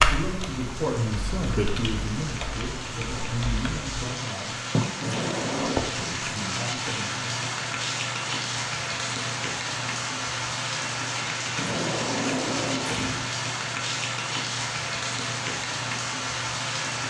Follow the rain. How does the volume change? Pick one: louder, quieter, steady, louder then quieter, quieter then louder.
louder.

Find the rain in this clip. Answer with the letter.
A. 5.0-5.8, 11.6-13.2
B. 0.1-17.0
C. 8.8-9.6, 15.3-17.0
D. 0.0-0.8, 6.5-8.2
B.